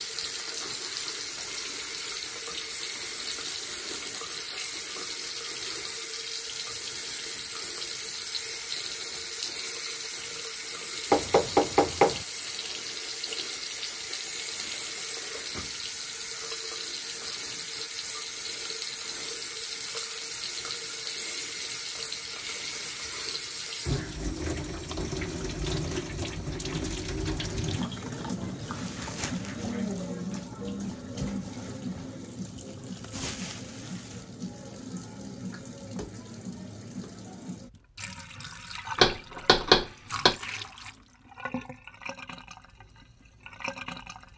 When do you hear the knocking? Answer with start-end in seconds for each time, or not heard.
11.1-12.2, 39.0-40.4.